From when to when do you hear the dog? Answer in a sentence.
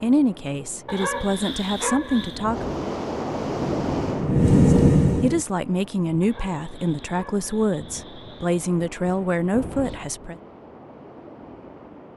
You can hear the dog from 0.8 to 2.5 s and from 6.2 to 8.7 s.